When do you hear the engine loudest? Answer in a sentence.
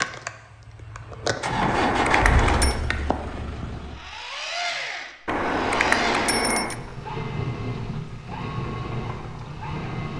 The loudest moment of the engine is at 2 seconds.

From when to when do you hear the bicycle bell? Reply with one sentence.
You can hear the bicycle bell from 1.6 to 2.8 s and from 5.2 to 6.8 s.